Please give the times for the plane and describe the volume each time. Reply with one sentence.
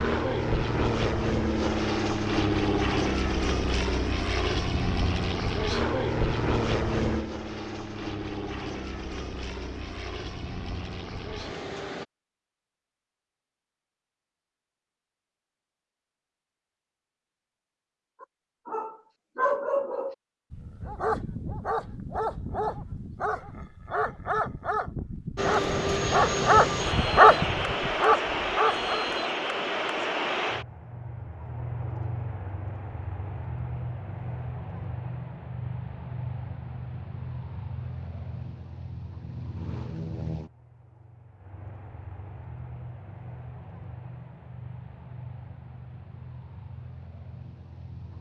The plane can be heard from 0.0 to 12.1 s, getting quieter; and from 25.4 to 48.1 s, getting quieter.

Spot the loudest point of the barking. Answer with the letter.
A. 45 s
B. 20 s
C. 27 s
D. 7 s
C.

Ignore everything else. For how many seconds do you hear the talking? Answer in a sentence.
The talking can't be heard in this clip.